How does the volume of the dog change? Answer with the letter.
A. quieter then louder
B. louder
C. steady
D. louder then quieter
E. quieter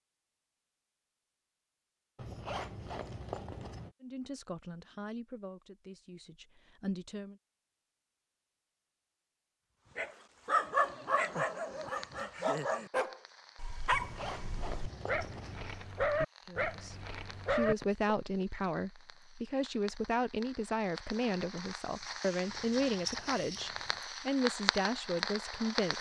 A.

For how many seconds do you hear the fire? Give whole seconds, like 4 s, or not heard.
15 s.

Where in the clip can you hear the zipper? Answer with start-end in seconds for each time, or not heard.
2.1-4.0, 13.9-15.8, 22.4-24.1.